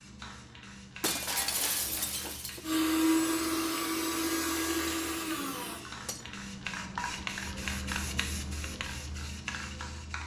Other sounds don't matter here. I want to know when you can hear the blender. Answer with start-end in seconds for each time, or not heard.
2.6-5.8.